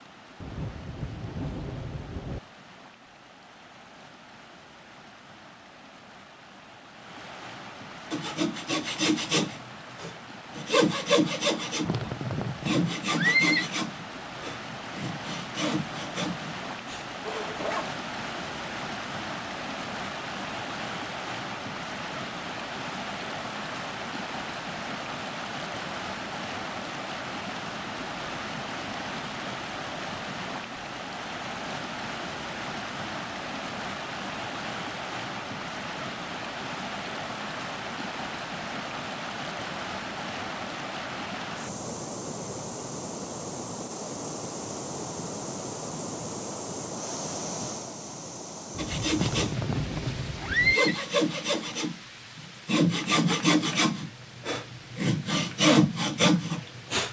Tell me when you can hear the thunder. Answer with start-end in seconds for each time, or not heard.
0.4-2.4, 48.7-50.8.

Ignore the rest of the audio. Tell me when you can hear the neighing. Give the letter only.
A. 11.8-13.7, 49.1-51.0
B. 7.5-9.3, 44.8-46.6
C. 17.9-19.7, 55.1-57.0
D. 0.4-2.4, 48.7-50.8
A.